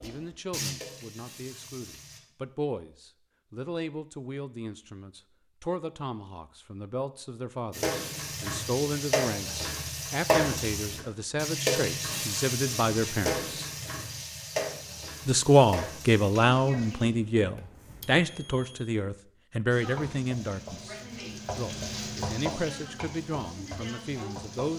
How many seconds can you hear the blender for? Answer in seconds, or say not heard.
not heard.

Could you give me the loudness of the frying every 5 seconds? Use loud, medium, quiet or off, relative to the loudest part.
medium, loud, loud, medium, medium.